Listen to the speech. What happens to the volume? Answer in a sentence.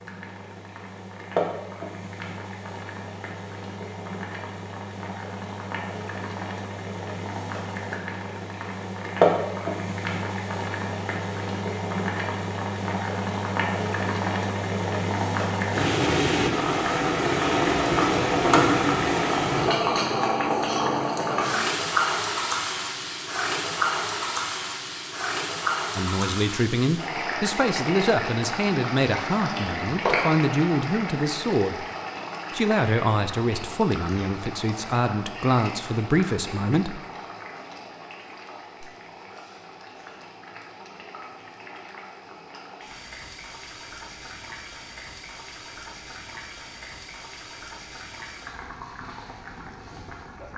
The volume of the speech stays about the same.